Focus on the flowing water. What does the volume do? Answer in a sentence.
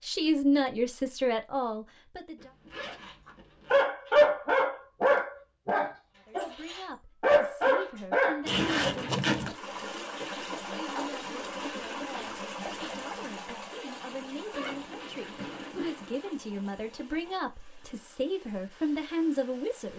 The loudness of the flowing water goes down.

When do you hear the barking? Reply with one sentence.
You can hear the barking from 3.0 to 12.9 s.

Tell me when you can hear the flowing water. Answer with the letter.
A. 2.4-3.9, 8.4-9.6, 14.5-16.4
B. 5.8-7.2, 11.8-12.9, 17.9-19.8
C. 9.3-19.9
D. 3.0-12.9
C.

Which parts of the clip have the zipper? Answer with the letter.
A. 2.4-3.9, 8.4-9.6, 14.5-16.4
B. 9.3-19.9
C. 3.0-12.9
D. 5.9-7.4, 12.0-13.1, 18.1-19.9
A.